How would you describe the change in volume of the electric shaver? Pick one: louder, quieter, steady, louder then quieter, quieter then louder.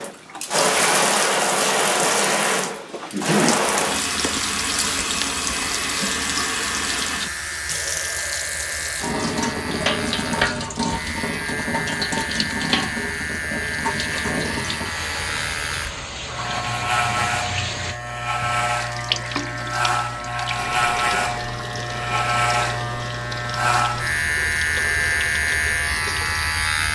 louder.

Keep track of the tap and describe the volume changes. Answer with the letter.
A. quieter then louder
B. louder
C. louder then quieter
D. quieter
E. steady
D.